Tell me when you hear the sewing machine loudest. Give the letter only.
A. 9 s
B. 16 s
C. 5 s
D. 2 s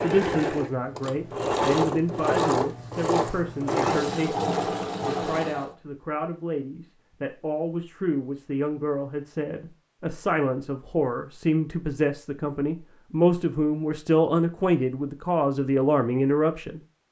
D.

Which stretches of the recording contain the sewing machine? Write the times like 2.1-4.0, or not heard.
0.0-5.8.